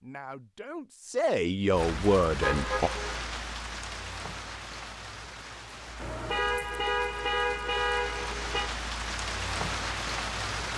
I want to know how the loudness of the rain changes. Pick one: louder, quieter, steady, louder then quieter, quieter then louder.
quieter then louder.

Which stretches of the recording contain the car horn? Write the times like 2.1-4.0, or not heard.
2.4-3.2, 6.0-8.7.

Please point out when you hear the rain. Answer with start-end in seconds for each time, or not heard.
1.7-10.7.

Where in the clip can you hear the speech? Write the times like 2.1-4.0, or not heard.
0.0-2.9.